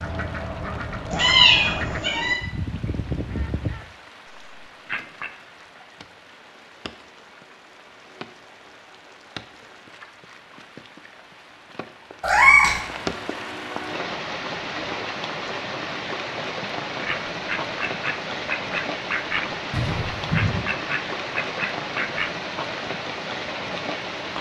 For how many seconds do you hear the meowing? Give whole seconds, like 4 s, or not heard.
3 s.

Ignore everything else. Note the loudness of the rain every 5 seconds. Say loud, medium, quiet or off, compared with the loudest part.
quiet, quiet, loud, loud, loud.